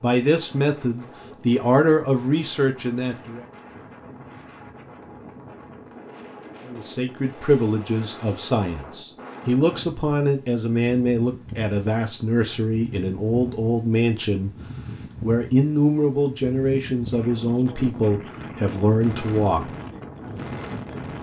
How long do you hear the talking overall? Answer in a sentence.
You can hear the talking for 16 seconds altogether.